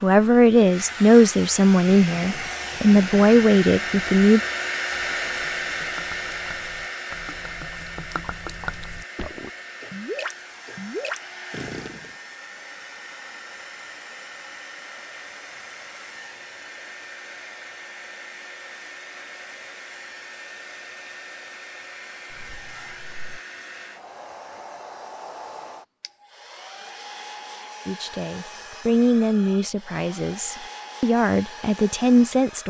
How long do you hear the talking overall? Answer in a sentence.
The talking can be heard for 9 seconds in total.